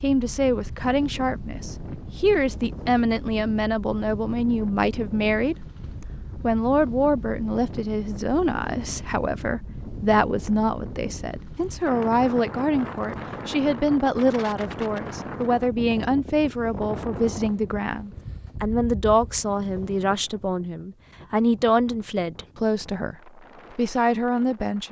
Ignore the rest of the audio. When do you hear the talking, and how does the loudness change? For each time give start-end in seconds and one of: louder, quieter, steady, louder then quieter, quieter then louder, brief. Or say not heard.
0.0-5.7 steady
6.4-24.8 steady.